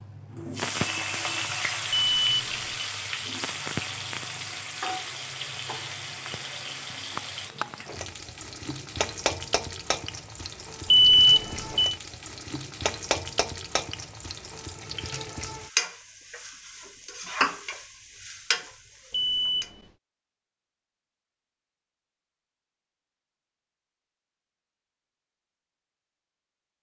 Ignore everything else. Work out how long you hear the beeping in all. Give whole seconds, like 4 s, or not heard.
3 s.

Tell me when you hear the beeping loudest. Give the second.
11 s.